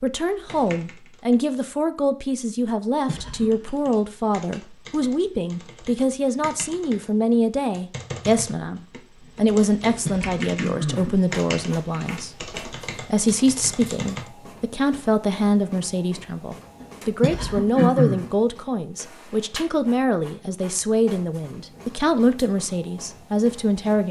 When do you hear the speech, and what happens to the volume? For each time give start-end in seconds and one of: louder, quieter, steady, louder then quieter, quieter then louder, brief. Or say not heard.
0.0-24.0 steady.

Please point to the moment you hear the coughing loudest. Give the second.
18 s.